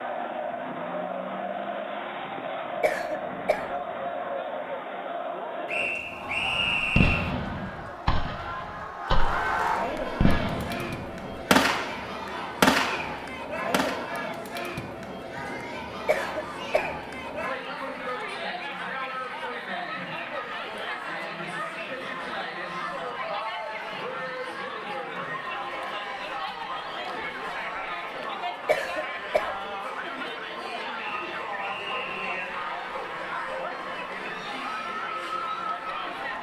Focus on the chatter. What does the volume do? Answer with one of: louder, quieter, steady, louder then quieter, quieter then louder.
steady.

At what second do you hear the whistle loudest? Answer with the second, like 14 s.
7 s.